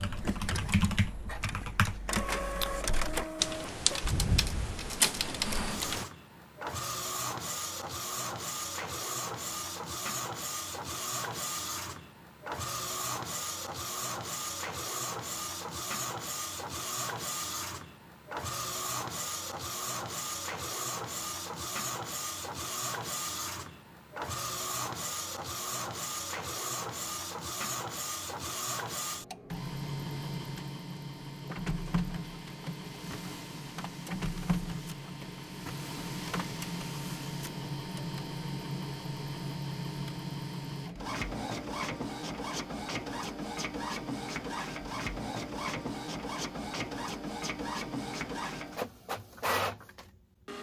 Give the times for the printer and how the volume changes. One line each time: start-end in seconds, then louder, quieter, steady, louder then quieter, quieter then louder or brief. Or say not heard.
0.0-50.5 steady.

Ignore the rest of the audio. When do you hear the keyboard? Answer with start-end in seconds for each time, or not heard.
0.0-6.0.